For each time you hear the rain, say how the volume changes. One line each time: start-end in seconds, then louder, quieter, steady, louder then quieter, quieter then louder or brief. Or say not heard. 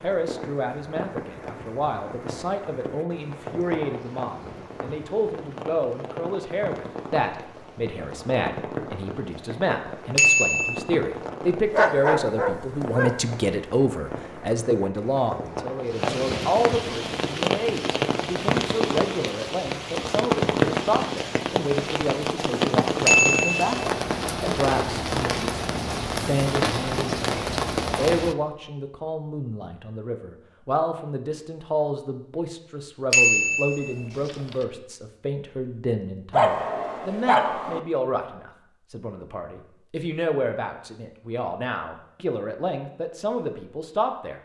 0.0-28.4 louder.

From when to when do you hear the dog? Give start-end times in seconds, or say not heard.
11.7-13.2, 36.3-37.8.